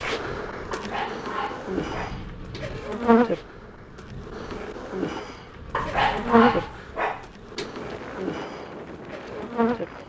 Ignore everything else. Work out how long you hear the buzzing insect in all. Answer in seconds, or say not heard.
10 s.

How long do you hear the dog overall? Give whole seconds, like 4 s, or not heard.
4 s.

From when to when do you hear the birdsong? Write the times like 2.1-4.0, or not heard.
not heard.